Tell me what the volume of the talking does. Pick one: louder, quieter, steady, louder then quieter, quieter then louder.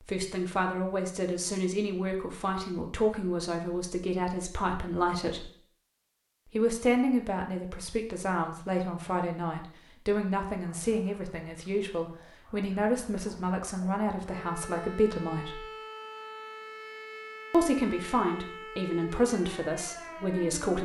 steady.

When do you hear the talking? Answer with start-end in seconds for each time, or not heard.
0.0-5.5, 6.5-15.7, 17.5-20.7.